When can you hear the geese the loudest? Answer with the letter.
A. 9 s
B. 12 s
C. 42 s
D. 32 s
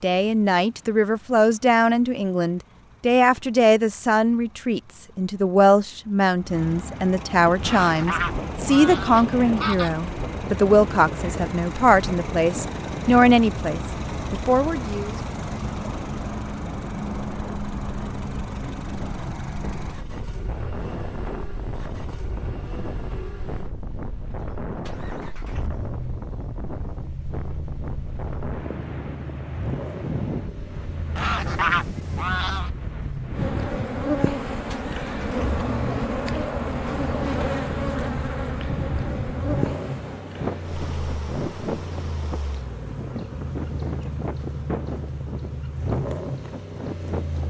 D.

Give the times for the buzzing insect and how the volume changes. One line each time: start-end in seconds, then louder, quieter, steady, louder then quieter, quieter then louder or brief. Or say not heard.
33.3-47.4 quieter.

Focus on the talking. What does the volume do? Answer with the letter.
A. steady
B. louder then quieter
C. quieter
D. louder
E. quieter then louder
A.